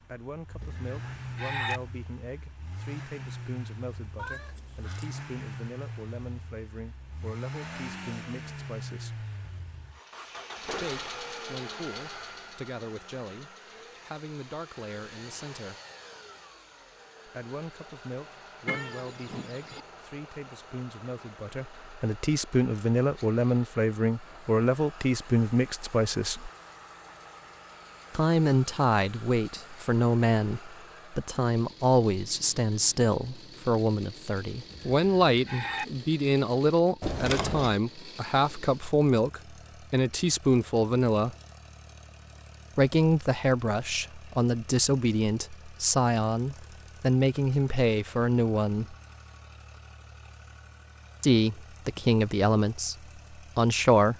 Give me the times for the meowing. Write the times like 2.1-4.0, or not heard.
4.2-5.1, 18.6-19.8, 37.0-37.8.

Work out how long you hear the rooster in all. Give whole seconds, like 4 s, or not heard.
2 s.